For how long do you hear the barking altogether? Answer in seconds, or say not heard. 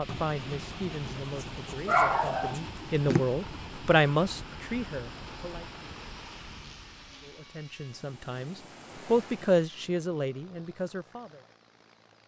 2 s.